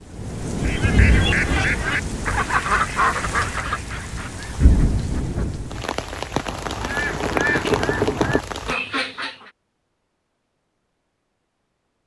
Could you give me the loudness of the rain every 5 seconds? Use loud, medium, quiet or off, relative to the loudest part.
loud, loud, off.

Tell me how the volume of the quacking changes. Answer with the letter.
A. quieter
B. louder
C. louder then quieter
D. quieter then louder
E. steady
D.